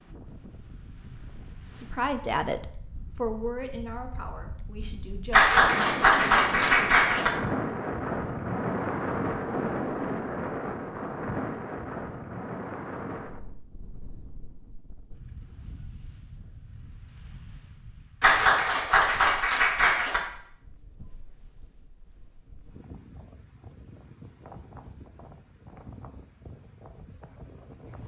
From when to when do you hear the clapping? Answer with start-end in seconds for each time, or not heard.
5.3-7.3, 18.2-20.2.